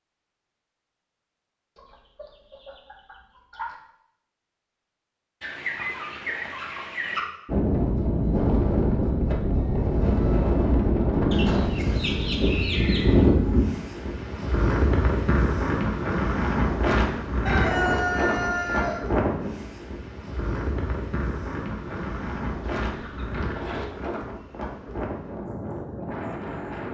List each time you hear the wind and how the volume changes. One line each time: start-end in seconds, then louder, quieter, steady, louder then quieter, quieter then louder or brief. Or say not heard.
7.5-26.8 quieter.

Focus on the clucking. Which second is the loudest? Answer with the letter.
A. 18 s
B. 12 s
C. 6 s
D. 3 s
A.